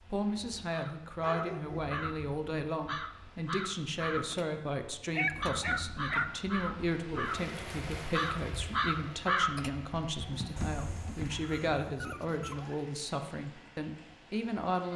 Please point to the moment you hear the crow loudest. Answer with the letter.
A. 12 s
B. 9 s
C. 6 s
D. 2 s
B.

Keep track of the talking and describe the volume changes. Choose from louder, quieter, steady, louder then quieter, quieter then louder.
steady.